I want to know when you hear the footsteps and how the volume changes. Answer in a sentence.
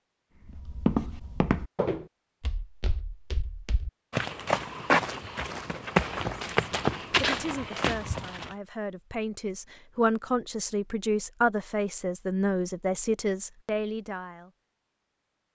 You can hear the footsteps from 0.5 to 8.6 s, getting quieter then louder.